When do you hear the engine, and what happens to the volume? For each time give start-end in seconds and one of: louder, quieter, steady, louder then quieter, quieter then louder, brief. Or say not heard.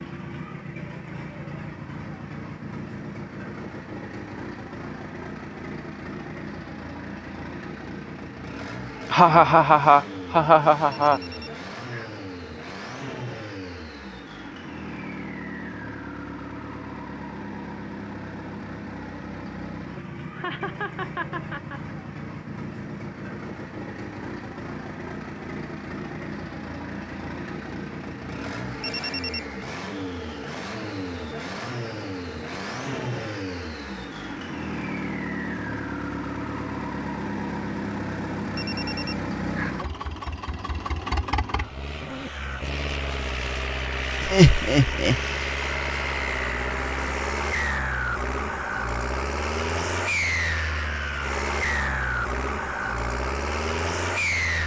0.0-54.6 louder.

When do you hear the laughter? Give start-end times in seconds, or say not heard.
9.1-11.2, 20.3-21.9, 44.2-45.2.